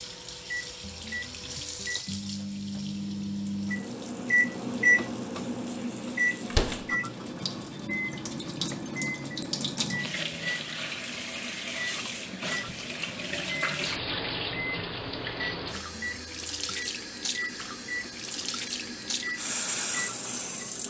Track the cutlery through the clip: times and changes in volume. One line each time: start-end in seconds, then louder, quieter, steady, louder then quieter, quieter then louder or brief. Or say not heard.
not heard.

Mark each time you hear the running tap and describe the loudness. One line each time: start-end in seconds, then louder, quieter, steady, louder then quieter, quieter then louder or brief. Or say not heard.
0.0-20.8 louder.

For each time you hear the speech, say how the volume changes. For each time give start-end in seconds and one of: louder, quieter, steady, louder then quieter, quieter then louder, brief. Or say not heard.
not heard.